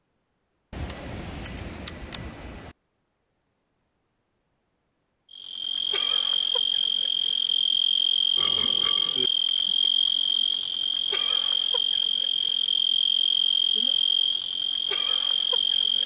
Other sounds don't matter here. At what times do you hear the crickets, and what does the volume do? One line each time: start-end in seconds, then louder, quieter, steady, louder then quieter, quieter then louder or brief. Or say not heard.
5.3-16.0 steady.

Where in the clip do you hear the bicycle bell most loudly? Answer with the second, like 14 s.
9 s.